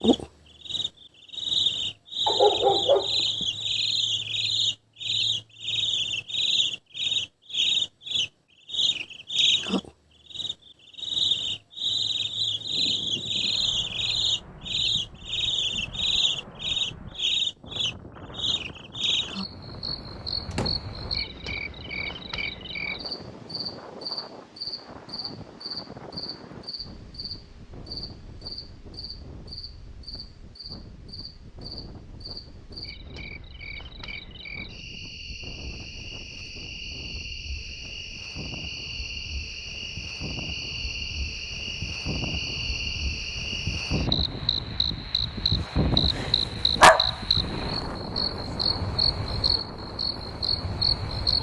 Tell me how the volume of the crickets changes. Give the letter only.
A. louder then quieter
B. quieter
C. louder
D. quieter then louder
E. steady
D.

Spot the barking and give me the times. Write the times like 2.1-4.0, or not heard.
2.2-3.5, 46.1-47.8.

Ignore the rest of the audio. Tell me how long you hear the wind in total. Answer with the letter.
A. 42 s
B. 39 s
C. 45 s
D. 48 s
B.